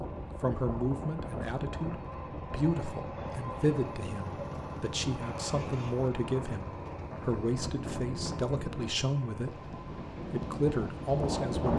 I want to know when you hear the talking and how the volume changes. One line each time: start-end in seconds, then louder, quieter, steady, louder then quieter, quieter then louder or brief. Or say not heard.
0.0-11.7 steady.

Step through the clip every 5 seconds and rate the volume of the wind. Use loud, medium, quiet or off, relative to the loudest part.
medium, medium, loud.